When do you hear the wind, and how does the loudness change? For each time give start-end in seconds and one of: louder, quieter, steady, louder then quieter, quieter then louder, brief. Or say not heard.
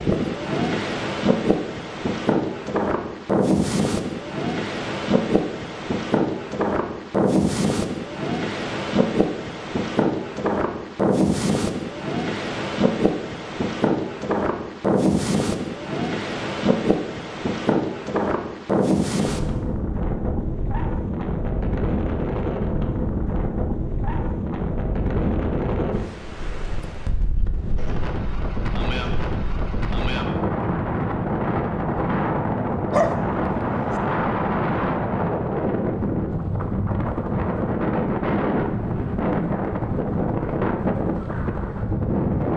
0.0-42.5 steady.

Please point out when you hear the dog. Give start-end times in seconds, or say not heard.
32.9-34.0.